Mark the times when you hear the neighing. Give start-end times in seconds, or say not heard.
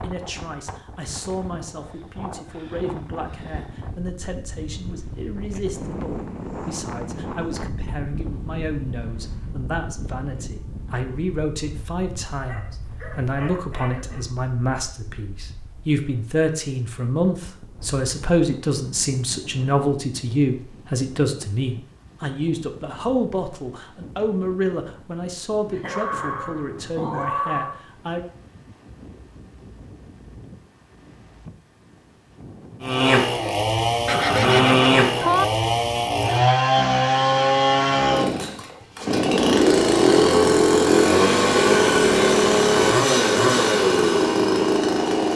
34.0-35.5.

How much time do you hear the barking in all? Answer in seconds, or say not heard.
4 s.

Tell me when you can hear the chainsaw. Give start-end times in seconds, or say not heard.
32.8-45.3.